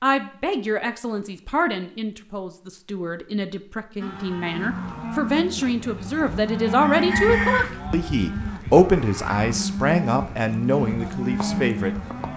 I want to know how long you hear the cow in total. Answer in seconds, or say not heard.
8 s.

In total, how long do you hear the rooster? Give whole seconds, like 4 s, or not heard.
2 s.